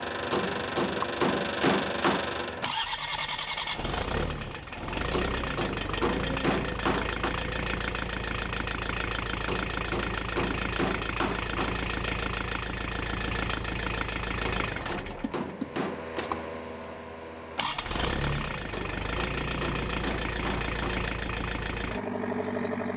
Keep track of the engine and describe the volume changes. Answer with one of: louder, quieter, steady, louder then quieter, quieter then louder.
steady.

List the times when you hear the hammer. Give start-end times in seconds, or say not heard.
0.3-2.2, 5.1-7.3, 9.4-11.9, 14.4-16.2, 18.7-21.1.